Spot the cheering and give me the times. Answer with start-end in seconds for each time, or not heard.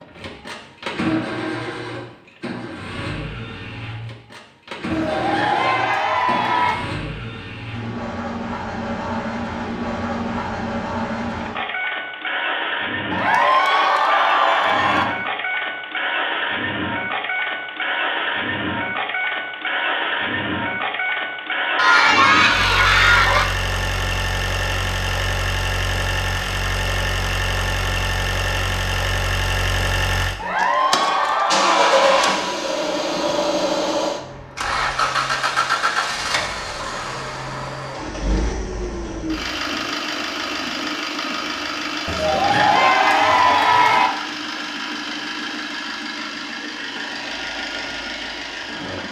4.9-6.8, 13.1-15.1, 21.8-23.4, 30.4-32.4, 42.0-44.1.